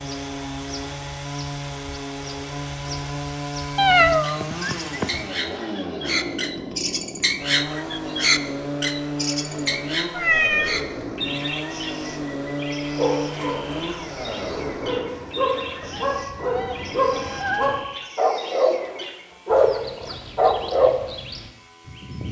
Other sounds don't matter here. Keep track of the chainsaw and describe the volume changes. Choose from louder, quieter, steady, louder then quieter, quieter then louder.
quieter.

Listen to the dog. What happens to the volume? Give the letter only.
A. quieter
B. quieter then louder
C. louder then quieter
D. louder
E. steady
D.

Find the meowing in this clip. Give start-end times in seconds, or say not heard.
3.8-5.1, 10.2-10.8, 15.8-17.9.